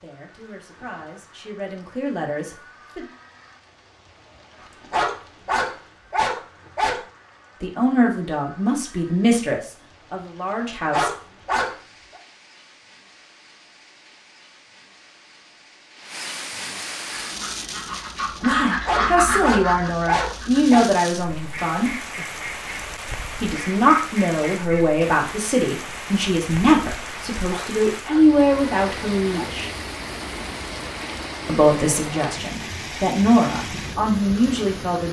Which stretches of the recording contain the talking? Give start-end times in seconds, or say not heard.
0.0-3.1, 7.6-11.1, 18.4-21.9, 23.4-29.6, 31.4-35.0.